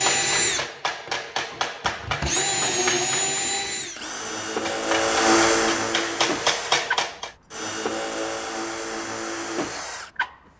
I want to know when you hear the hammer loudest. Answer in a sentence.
The loudest moment of the hammer is at 7 seconds.